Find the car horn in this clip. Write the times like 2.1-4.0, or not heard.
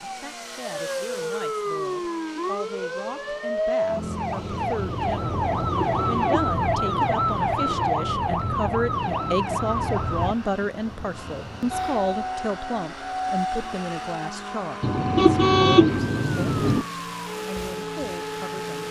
5.6-6.5, 14.8-16.9.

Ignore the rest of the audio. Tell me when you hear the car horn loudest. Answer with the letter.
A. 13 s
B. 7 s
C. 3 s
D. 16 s
D.